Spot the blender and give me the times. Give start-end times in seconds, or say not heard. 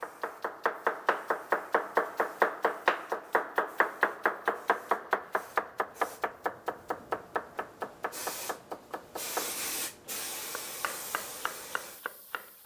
not heard.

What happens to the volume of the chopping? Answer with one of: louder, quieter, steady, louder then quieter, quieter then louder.
quieter.